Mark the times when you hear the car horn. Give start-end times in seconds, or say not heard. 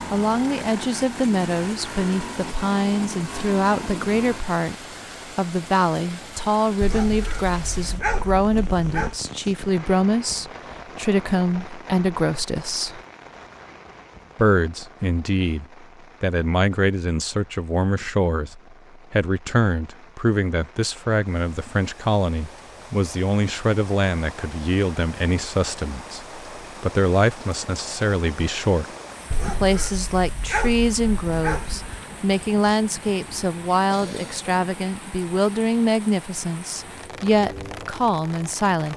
not heard.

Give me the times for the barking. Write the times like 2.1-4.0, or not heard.
6.8-9.2, 29.3-31.9.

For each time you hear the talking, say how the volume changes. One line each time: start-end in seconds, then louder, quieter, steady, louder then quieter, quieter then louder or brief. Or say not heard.
0.1-13.0 steady
14.3-28.9 steady
29.4-38.9 steady.